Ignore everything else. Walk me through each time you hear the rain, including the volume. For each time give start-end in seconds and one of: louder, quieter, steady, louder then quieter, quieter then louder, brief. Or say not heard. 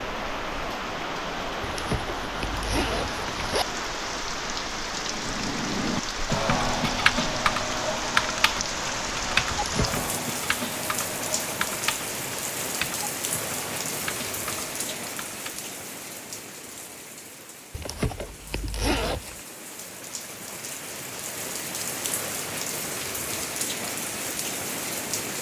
0.0-25.3 quieter then louder.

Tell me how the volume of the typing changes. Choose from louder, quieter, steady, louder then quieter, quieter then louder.
quieter.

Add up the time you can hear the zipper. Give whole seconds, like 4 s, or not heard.
4 s.